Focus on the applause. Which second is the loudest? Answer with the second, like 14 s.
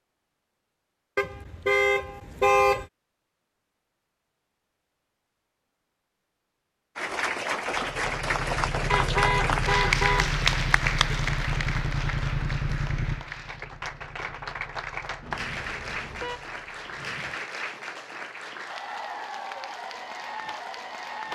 10 s.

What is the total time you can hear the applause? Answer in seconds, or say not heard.
14 s.